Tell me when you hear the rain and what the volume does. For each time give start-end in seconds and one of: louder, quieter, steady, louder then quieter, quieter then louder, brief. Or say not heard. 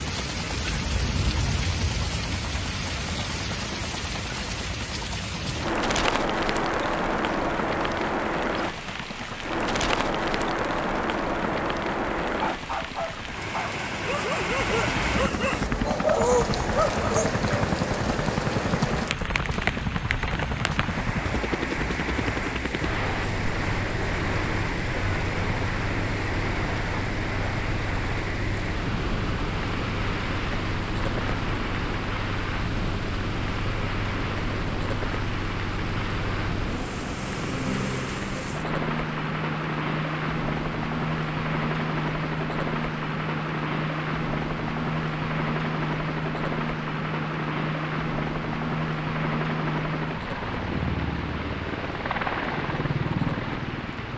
0.0-54.1 quieter.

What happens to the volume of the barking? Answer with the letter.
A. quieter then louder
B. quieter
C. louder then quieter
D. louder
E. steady
D.